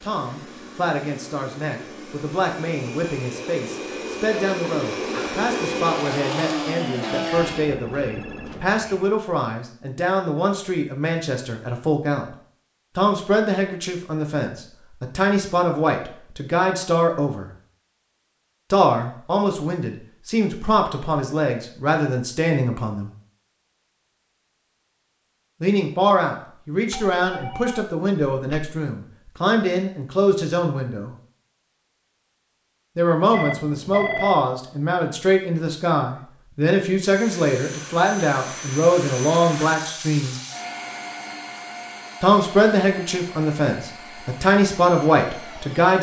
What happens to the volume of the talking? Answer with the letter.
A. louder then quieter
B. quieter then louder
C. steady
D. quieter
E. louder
E.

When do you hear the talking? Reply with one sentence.
You can hear the talking from 0.0 to 12.2 s, from 12.9 to 17.5 s, from 18.7 to 23.1 s, from 25.6 to 31.1 s, from 33.0 to 40.4 s and from 42.2 to 45.9 s.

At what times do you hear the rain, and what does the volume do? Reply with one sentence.
You can't hear the rain here.